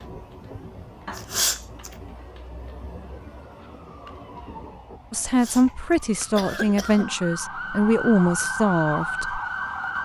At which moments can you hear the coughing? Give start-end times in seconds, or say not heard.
1.1-1.9, 5.2-5.7, 6.3-7.2.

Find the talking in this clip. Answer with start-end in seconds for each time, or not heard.
5.1-9.4.